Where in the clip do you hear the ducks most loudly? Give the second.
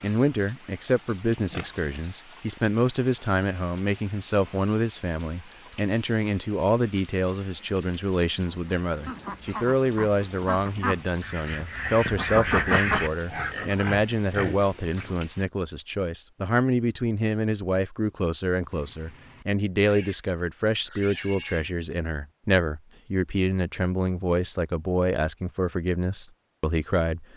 13 s.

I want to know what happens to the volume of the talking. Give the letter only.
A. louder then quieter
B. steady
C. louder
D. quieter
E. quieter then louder
B.